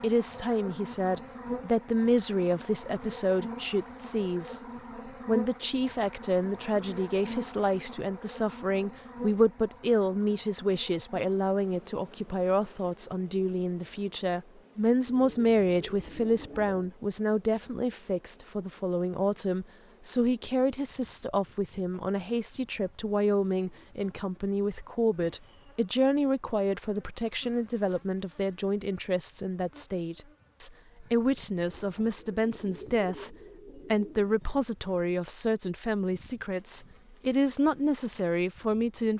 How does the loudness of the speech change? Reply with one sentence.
The loudness of the speech stays about the same.